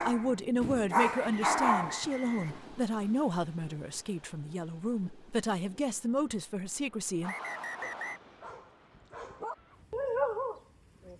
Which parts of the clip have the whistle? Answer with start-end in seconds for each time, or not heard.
1.1-2.8, 7.2-8.2.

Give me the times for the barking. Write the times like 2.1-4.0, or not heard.
0.0-2.1, 7.2-11.1.